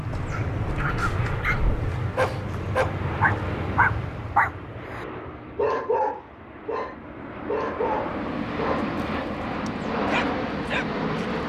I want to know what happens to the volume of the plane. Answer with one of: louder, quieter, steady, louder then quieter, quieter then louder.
quieter then louder.